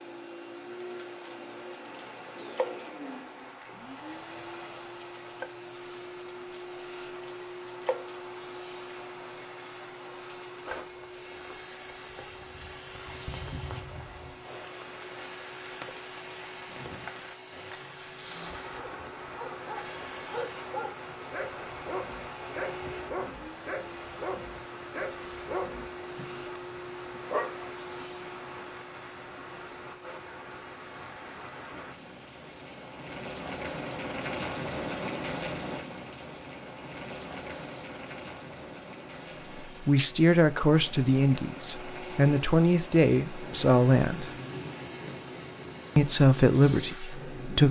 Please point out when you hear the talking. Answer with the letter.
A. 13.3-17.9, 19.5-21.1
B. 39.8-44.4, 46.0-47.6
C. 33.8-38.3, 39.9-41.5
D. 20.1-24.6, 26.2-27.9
B.